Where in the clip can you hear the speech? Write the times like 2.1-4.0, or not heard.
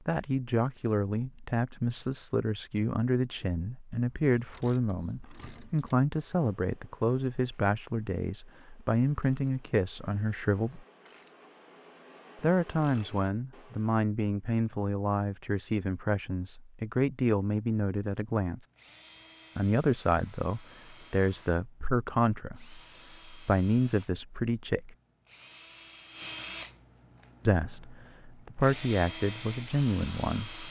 0.1-10.8, 12.4-18.6, 19.6-24.9, 27.4-30.6.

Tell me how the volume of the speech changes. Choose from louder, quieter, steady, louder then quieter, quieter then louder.
steady.